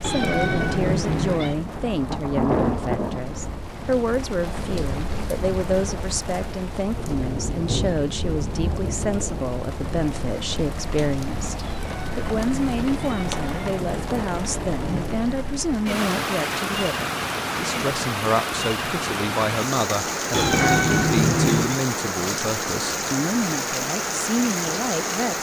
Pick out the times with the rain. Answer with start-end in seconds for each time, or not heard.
0.0-25.3.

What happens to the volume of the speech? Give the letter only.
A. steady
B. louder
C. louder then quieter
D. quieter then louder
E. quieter
A.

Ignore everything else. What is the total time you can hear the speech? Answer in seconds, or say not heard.
25 s.